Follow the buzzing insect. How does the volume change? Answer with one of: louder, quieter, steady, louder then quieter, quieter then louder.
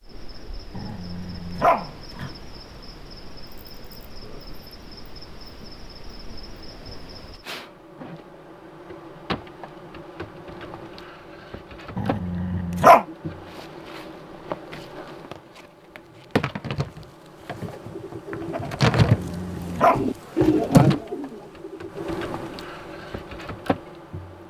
louder.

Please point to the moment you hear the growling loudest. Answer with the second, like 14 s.
13 s.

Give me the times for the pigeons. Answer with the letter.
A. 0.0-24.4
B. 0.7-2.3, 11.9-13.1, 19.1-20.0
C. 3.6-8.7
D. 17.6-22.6
D.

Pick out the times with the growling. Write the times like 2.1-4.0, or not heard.
0.7-2.3, 11.9-13.1, 19.1-20.0.